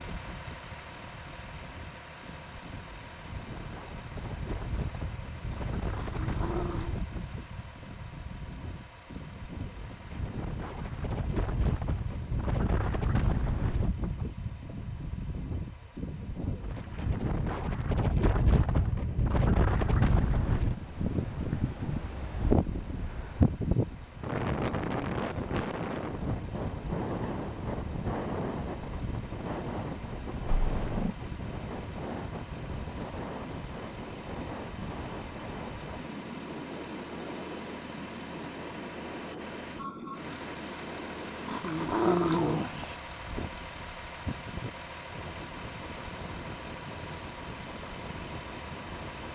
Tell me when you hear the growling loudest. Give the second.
42 s.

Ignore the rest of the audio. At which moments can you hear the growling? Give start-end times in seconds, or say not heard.
6.0-7.0, 30.4-31.1, 41.5-43.0.